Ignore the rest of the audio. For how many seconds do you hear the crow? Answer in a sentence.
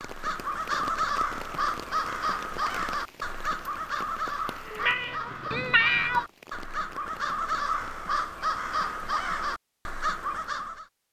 You can hear the crow for 11 seconds altogether.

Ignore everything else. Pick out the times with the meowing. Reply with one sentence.
The meowing can be heard from 4.8 to 6.2 s.